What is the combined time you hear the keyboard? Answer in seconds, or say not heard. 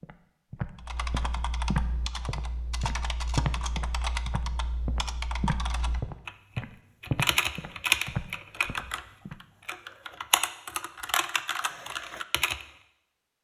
12 s.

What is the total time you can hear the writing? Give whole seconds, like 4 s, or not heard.
not heard.